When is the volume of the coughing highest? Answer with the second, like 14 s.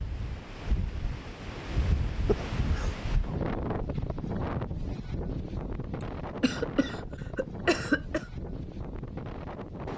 8 s.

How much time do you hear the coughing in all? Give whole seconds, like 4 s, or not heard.
3 s.